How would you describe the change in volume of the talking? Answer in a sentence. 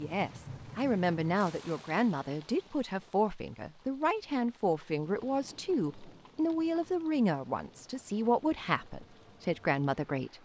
The loudness of the talking stays about the same.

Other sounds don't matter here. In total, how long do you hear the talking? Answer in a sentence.
The talking can be heard for 10 seconds in total.